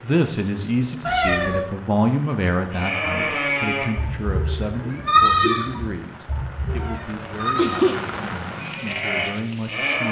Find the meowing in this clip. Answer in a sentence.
The meowing can be heard from 1.1 to 1.6 s and from 6.8 to 8.0 s.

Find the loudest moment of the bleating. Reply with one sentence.
The loudest moment of the bleating is at 5 seconds.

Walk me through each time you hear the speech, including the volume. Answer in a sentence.
The speech can be heard from 0.0 to 10.0 s, getting quieter.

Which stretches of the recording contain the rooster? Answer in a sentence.
You can't hear the rooster here.